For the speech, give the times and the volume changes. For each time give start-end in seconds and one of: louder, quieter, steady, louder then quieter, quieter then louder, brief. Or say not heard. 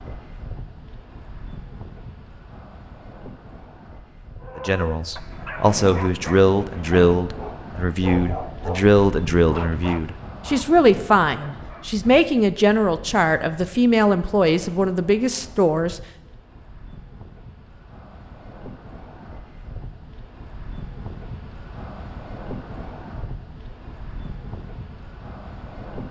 4.5-16.0 steady.